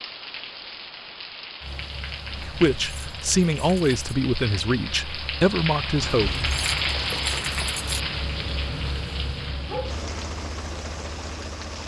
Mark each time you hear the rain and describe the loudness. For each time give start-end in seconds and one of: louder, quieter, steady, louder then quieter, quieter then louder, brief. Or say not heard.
0.0-11.8 louder then quieter.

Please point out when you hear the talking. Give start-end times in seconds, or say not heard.
2.3-6.3.